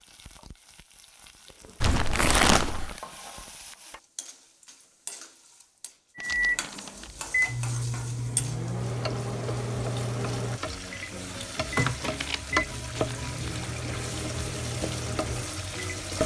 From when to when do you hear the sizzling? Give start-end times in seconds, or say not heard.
0.0-16.2.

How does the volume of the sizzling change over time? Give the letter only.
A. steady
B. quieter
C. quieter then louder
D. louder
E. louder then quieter
D.